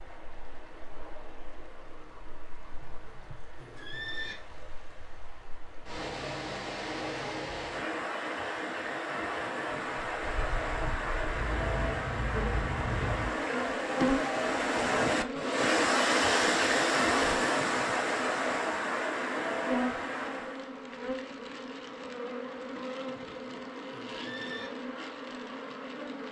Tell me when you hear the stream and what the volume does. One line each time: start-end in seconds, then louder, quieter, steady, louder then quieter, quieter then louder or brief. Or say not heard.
0.0-20.7 louder.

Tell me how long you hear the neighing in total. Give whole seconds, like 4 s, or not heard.
3 s.